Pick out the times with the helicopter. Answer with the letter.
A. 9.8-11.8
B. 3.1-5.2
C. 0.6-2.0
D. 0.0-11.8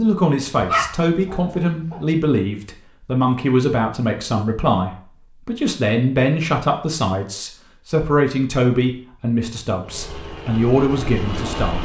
A.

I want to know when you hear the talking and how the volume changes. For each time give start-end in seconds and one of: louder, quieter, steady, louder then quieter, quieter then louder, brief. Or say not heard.
0.0-11.8 steady.